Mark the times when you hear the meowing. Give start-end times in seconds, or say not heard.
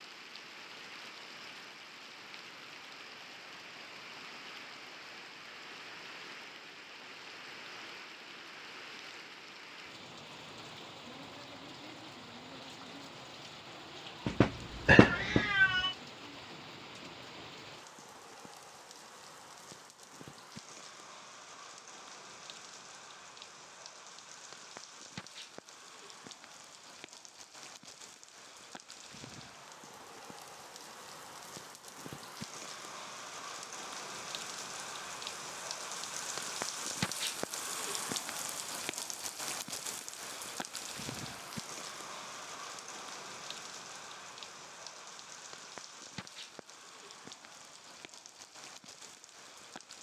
14.2-15.9.